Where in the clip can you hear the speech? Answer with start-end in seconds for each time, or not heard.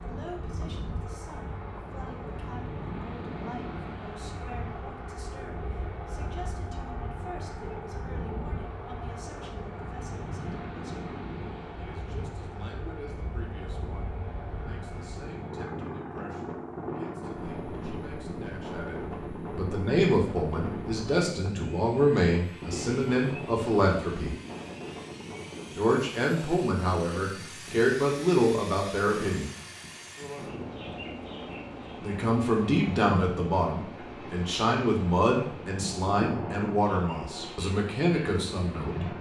0.0-24.4, 25.8-29.5, 32.0-39.0.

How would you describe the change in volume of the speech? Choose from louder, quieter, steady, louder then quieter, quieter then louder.
louder.